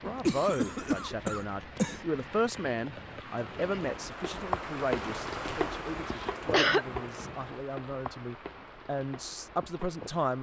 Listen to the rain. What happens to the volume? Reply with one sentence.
The volume of the rain goes up, then down.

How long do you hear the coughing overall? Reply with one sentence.
The coughing can be heard for 3 seconds in total.